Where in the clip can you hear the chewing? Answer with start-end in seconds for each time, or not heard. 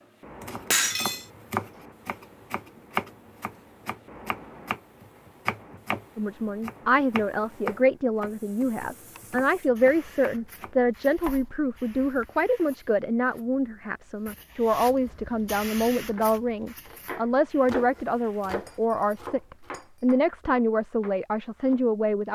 not heard.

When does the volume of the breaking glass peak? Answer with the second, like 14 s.
1 s.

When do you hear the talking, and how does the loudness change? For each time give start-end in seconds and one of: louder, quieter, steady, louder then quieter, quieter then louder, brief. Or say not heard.
6.2-22.3 steady.